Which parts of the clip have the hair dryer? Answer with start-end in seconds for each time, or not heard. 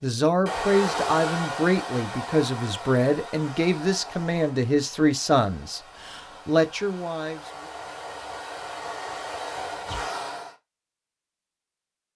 0.0-10.6.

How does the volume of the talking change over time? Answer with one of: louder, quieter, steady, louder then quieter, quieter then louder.
steady.